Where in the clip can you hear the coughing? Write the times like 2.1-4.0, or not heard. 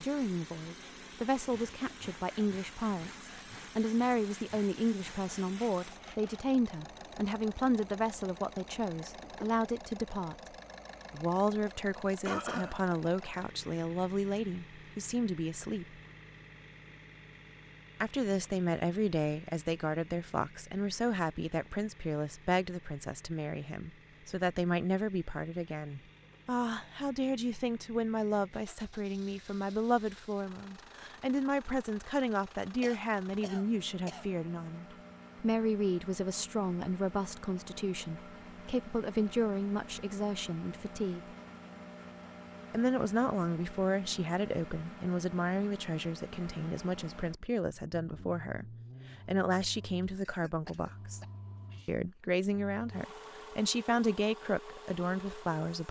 12.2-12.8, 32.8-34.3, 50.2-51.9.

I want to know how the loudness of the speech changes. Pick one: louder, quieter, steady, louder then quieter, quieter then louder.
steady.